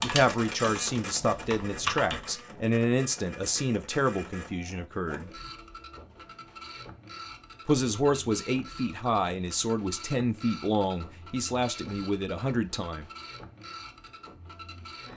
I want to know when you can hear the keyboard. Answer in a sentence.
You can hear the keyboard from 0.0 to 2.4 s.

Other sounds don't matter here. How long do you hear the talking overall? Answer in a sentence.
You can hear the talking for 11 seconds altogether.